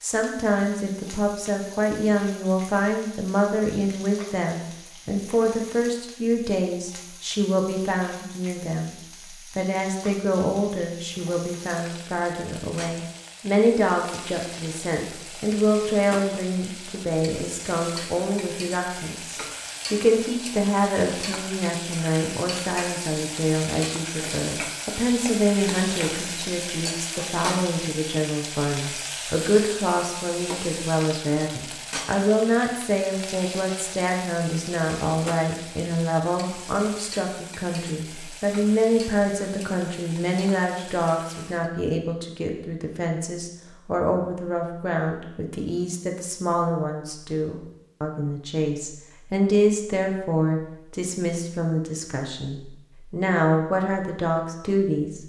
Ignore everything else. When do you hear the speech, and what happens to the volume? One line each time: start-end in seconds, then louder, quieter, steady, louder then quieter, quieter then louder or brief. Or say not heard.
0.0-8.9 steady
9.6-55.2 steady.